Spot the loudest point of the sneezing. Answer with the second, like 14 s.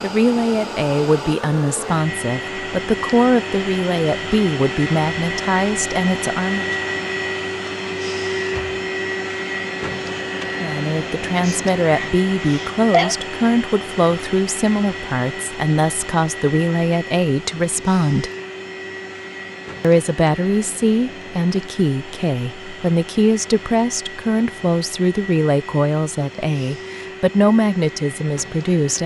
13 s.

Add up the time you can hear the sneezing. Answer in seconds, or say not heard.
2 s.